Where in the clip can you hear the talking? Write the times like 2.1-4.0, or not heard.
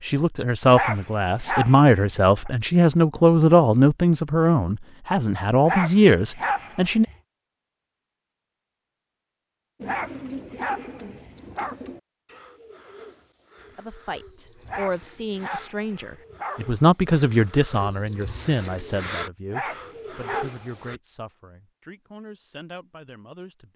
0.0-7.0, 13.8-23.7.